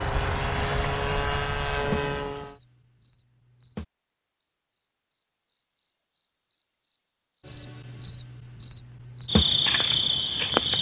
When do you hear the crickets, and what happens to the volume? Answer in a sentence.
You can hear the crickets from 0.0 to 10.7 s, getting quieter then louder.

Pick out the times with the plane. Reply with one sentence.
You can hear the plane from 0.0 to 2.5 s.